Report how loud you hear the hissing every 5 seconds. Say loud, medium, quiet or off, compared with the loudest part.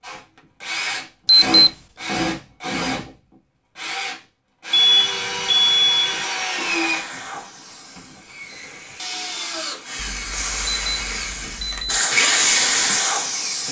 off, quiet, loud.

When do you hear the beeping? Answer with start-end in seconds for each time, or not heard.
1.2-1.7, 4.7-6.2, 9.9-12.0.